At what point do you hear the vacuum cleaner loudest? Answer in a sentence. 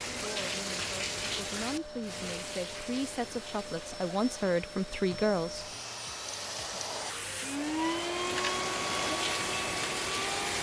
The loudest moment of the vacuum cleaner is at 8 seconds.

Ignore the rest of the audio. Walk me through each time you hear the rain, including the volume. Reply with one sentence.
You can hear the rain from 0.0 to 10.5 s, getting quieter then louder.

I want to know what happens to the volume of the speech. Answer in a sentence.
The loudness of the speech goes up.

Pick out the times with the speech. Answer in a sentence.
The speech can be heard from 0.2 to 5.7 s.